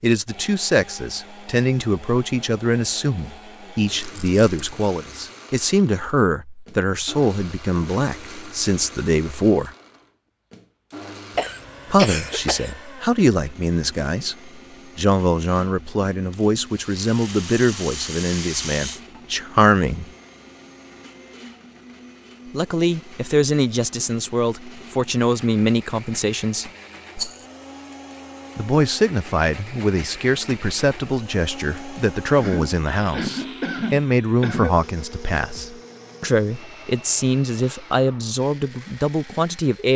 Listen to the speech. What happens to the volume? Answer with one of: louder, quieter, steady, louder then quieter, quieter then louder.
steady.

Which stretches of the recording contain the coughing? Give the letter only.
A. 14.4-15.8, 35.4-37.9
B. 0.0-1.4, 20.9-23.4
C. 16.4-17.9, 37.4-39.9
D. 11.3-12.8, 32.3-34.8
D.